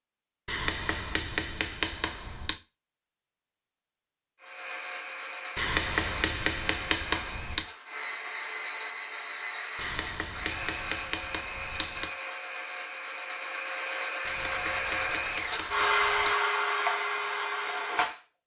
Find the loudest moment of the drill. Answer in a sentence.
The volume of the drill peaks at 16 seconds.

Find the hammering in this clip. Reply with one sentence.
You can hear the hammering from 0.5 to 2.6 s, from 5.5 to 7.7 s, from 9.8 to 12.1 s and from 14.2 to 16.4 s.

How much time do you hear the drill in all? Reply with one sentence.
You can hear the drill for 14 seconds altogether.